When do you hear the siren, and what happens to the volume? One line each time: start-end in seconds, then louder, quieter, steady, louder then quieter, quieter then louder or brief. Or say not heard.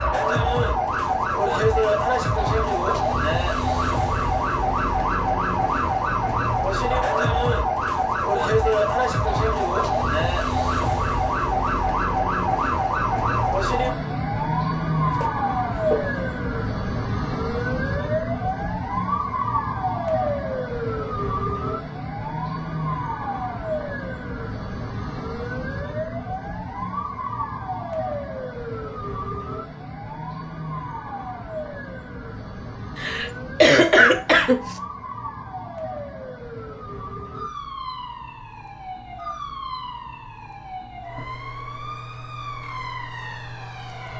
0.0-44.1 quieter.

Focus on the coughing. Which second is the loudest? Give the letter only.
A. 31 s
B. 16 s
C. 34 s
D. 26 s
C.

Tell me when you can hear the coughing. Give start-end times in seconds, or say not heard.
15.2-16.2, 33.0-34.8.